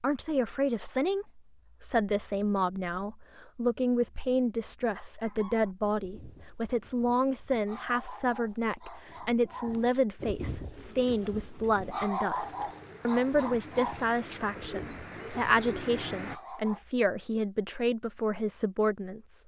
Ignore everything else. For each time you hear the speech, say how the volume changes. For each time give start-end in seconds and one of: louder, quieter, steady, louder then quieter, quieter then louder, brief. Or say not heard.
0.0-19.4 steady.